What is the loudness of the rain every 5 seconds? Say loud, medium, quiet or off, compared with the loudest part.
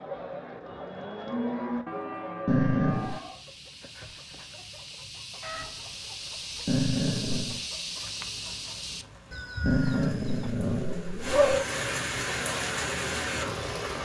off, quiet, loud.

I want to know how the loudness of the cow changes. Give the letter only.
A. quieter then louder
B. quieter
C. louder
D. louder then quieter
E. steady
D.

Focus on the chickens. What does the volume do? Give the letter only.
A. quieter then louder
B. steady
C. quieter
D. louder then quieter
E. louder
E.